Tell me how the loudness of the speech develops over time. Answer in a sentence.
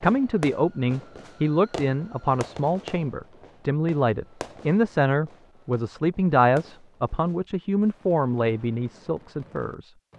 The volume of the speech stays about the same.